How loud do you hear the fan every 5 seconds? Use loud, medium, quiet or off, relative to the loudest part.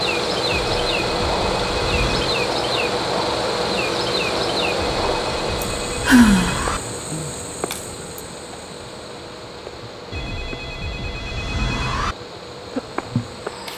loud, medium, quiet.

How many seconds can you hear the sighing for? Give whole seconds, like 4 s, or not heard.
2 s.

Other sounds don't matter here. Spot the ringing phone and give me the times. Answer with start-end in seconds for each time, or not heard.
0.5-2.4, 4.8-6.8, 10.1-12.2.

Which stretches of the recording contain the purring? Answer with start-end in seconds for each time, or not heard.
not heard.